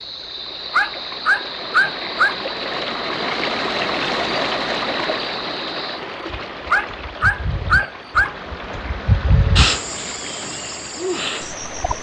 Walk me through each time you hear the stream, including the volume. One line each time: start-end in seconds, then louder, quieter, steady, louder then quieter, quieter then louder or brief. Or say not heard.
0.0-11.9 louder then quieter.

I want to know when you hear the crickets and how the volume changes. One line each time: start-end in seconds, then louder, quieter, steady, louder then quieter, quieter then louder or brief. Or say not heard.
0.0-11.9 louder.